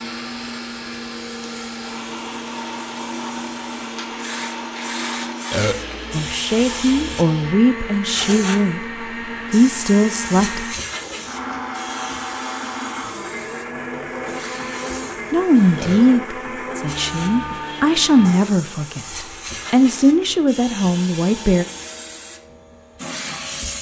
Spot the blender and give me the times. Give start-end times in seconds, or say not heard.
0.0-21.9.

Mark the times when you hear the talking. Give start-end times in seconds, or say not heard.
6.1-10.8, 15.3-21.6.